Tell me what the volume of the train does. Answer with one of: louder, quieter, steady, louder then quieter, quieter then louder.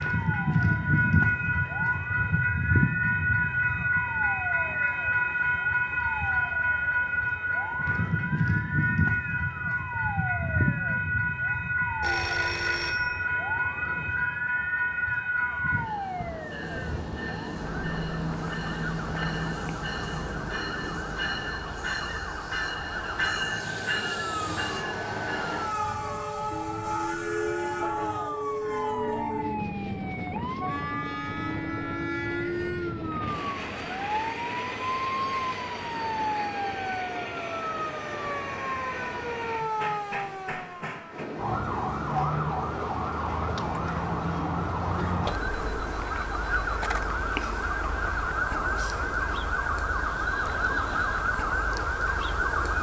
quieter.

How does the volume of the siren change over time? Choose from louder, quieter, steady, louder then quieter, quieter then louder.
louder.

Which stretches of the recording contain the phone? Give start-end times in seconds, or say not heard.
12.0-13.2.